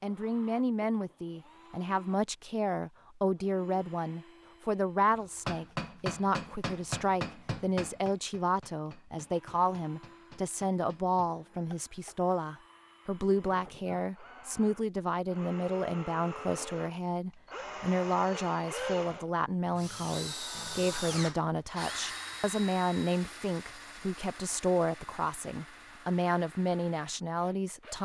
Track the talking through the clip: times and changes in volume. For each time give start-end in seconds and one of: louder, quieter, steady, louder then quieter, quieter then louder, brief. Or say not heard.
0.0-28.0 steady.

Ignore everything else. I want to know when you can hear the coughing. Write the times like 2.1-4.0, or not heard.
not heard.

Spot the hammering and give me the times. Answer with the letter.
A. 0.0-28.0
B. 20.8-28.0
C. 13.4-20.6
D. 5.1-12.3
D.